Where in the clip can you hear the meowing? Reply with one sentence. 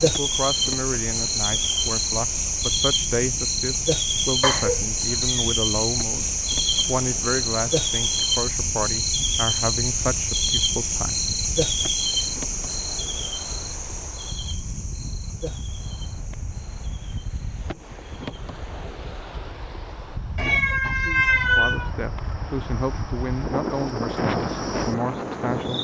You can hear the meowing from 4.4 to 5.2 s and from 20.4 to 21.9 s.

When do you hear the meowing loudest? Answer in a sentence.
The loudest moment of the meowing is at 21 seconds.